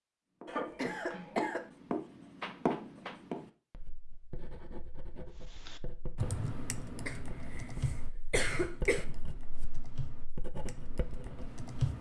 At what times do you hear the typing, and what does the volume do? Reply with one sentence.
You can hear the typing from 5.7 to 11.9 s, getting quieter.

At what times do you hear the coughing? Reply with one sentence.
You can hear the coughing from 0.5 to 1.6 s and from 7.0 to 9.1 s.